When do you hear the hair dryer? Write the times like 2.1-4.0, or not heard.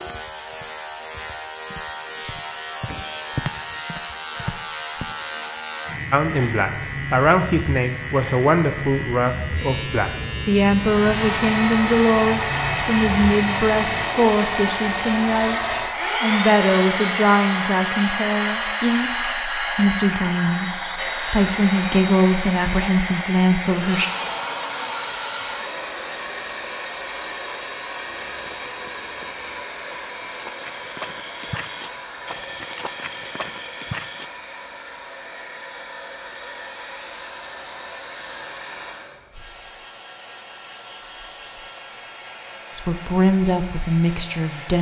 10.8-44.7.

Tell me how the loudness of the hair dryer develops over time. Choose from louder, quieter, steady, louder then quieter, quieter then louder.
quieter.